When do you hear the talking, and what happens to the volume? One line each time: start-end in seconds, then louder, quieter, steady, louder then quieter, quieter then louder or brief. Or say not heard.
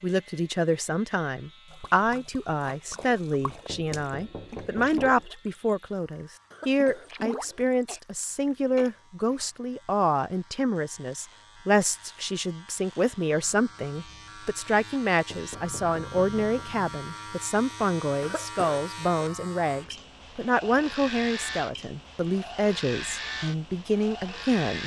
0.0-24.8 steady.